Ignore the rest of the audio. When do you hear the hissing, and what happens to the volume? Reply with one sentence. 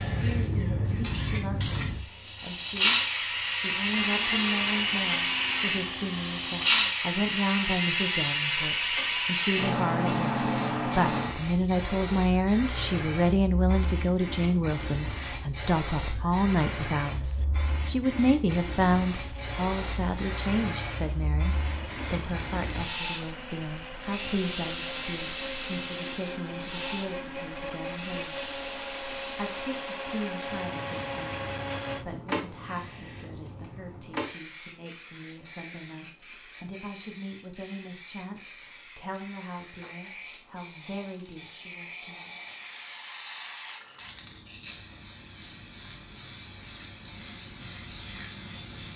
The hissing can be heard from 0.0 to 48.9 s, getting quieter.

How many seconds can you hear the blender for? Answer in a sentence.
The blender can be heard for 16 seconds in total.